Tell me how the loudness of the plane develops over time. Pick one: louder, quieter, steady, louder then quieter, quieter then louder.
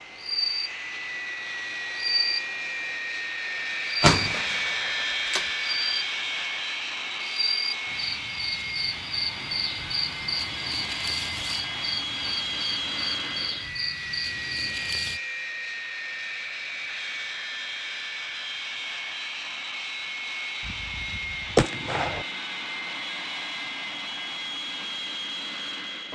steady.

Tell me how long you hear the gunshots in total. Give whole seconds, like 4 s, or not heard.
3 s.